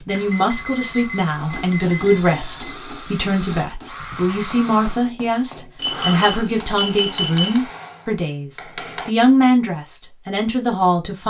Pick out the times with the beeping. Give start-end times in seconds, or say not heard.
0.1-2.8, 5.8-7.6.